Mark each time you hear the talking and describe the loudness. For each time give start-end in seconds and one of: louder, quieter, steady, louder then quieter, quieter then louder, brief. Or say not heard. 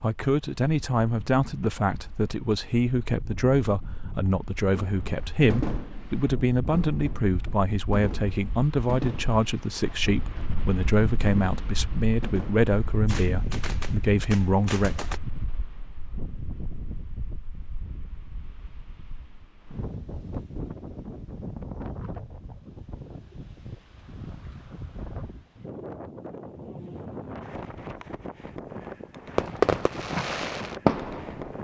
0.0-14.9 steady.